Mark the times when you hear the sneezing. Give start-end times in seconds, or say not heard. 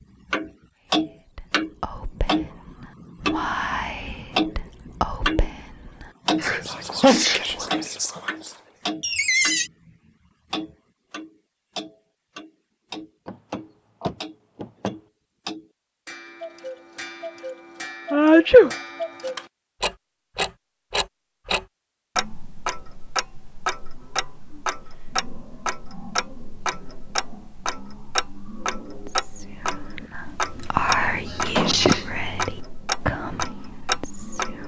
6.4-7.4, 18.1-18.8, 31.2-32.0.